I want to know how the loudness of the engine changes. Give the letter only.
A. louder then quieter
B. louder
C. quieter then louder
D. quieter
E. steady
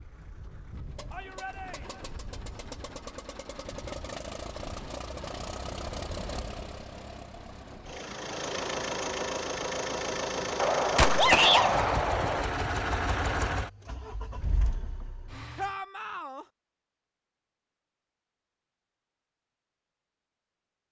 B.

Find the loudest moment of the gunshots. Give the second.
11 s.